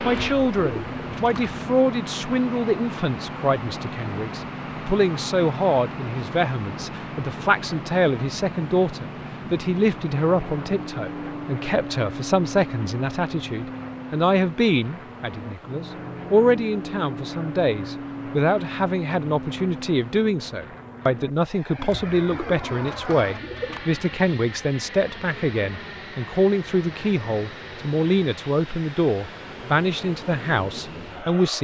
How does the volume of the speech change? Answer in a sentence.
The volume of the speech stays about the same.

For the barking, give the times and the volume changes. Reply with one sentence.
You can't hear the barking here.